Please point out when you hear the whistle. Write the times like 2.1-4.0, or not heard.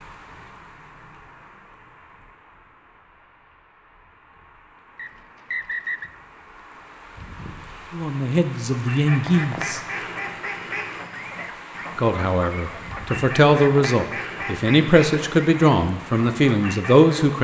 5.0-6.1.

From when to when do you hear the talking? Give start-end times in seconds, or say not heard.
7.9-9.8, 11.9-17.3.